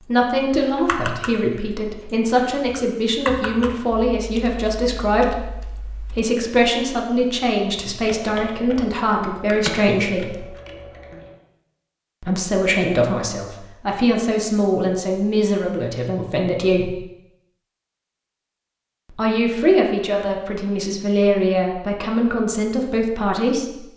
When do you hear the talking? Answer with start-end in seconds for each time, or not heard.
0.0-10.4, 12.2-16.9, 19.1-23.8.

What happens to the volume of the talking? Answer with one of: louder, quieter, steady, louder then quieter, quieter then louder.
steady.